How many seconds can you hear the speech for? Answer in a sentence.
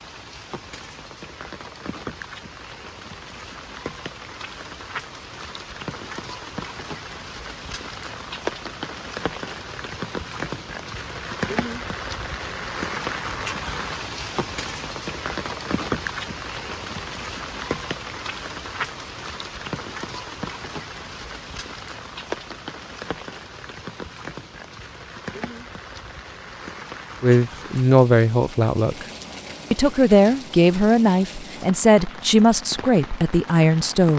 You can hear the speech for 6 seconds altogether.